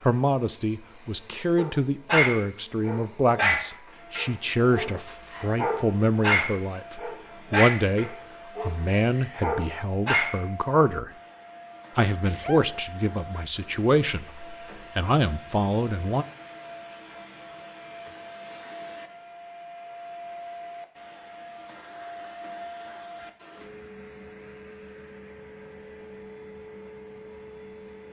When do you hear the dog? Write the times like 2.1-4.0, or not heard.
1.6-10.4.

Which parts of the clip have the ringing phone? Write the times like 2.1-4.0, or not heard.
not heard.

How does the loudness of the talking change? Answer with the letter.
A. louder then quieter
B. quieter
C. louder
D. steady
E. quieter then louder
D.